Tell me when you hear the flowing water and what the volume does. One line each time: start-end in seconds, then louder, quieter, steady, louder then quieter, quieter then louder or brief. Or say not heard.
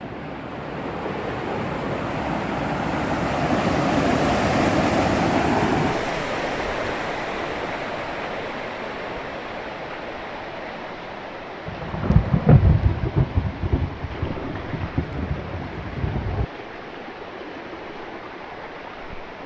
0.0-19.4 quieter.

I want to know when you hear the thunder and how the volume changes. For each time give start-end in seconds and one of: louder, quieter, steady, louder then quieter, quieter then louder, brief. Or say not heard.
11.7-16.4 quieter.